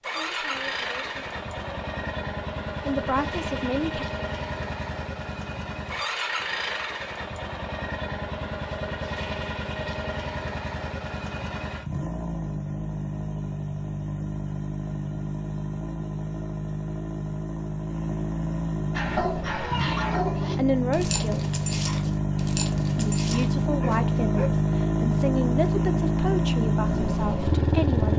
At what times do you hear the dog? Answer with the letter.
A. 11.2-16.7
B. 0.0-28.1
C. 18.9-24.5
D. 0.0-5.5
C.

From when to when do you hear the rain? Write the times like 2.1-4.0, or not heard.
not heard.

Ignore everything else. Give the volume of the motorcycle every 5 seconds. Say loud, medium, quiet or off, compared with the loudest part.
medium, medium, medium, medium, loud, loud.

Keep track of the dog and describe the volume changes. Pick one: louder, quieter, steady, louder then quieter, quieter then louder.
quieter.